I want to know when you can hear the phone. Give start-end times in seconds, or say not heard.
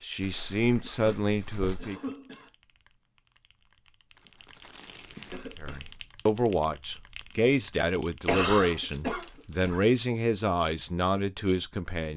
not heard.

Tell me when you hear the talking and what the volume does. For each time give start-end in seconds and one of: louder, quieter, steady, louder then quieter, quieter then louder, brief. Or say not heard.
0.0-1.9 brief
5.6-12.1 steady.